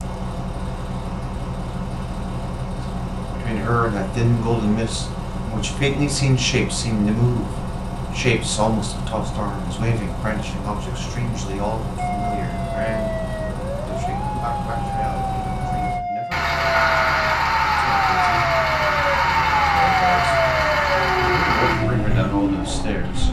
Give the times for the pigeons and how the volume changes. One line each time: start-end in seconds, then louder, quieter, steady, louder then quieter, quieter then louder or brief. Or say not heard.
not heard.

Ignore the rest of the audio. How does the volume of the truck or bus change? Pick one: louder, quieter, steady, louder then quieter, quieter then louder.
louder.